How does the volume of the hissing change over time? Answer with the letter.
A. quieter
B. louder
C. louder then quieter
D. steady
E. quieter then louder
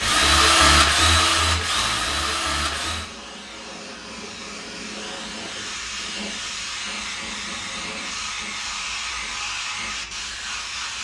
B.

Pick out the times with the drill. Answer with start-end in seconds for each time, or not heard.
0.0-3.1.